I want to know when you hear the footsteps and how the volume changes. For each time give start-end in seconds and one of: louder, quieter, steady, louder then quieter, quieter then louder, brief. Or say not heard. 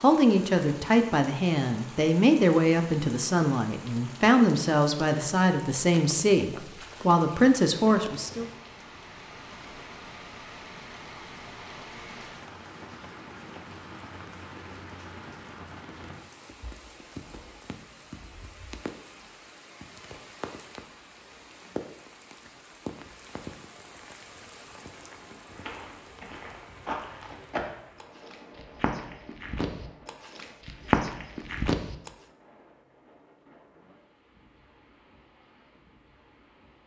25.4-32.1 louder.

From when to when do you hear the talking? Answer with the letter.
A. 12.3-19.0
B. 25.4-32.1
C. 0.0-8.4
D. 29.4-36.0
C.